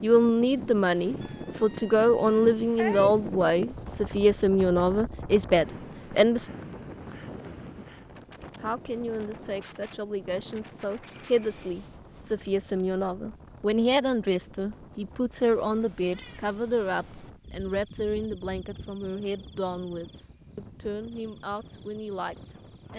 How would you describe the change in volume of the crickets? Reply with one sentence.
The loudness of the crickets goes down.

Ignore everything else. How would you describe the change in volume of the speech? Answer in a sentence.
The loudness of the speech goes down.